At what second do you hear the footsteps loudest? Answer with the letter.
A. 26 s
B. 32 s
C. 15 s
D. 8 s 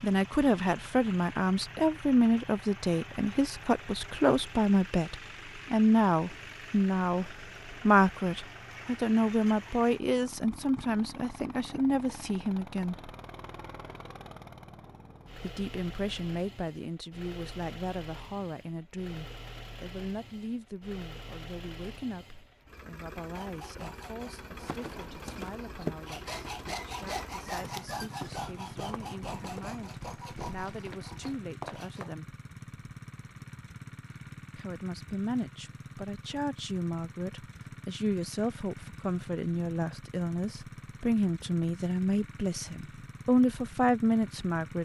A.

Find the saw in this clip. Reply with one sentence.
You can hear the saw from 23.1 to 32.0 s.